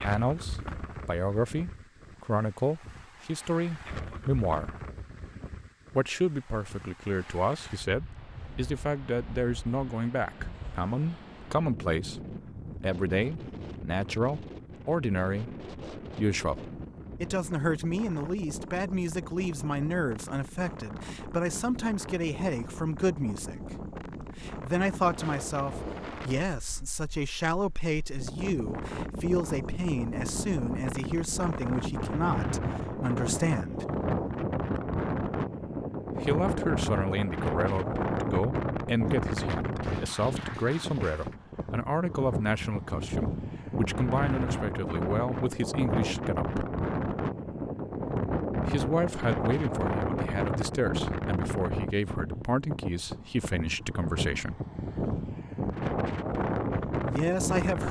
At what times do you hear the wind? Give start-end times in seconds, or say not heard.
0.0-57.8.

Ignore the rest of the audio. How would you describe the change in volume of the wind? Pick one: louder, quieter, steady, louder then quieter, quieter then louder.
louder.